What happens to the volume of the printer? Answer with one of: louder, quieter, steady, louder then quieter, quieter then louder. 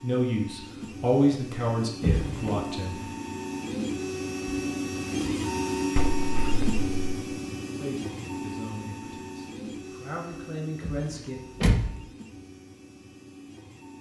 louder then quieter.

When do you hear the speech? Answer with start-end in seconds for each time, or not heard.
0.0-3.0, 7.8-11.4.